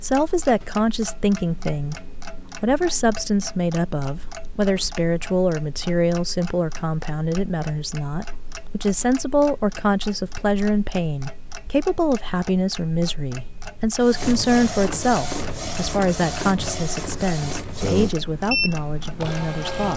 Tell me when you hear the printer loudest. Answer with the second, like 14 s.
18 s.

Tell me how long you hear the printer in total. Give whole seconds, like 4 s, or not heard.
6 s.